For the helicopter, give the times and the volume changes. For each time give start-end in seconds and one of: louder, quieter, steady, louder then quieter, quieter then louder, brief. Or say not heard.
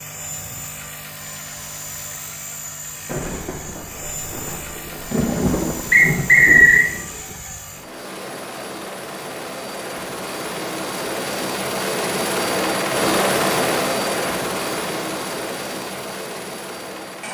0.0-17.2 louder.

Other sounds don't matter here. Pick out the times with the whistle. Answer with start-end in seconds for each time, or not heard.
5.9-6.8.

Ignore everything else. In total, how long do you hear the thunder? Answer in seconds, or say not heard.
4 s.